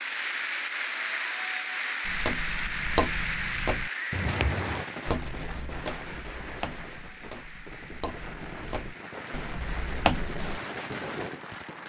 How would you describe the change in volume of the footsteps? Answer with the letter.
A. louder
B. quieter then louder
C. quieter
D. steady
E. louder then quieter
B.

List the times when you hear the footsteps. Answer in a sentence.
The footsteps can be heard from 2.0 to 10.6 s.